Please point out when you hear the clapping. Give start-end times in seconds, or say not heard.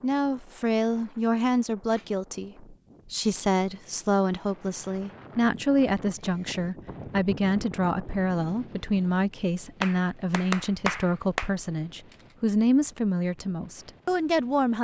9.8-11.5.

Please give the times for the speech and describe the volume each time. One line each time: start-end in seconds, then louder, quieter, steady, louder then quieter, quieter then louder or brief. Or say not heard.
0.0-14.7 steady.